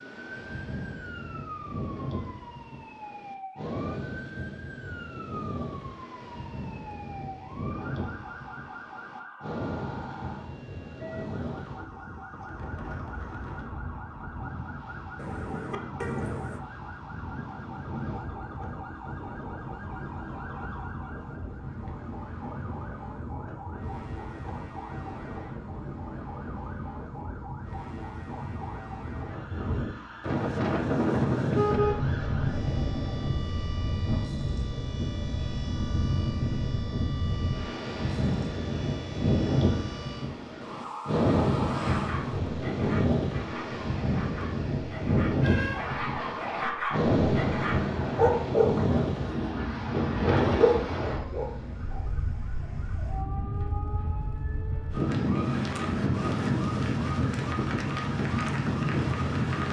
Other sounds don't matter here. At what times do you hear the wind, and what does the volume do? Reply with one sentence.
You can hear the wind from 0.0 to 59.6 s, getting louder.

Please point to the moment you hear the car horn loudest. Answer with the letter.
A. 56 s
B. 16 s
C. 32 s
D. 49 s
C.